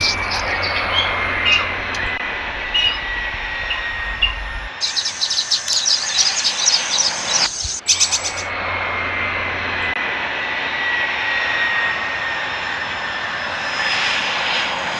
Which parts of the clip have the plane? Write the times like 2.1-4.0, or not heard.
0.0-14.9.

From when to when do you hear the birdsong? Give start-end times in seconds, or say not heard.
0.0-8.4.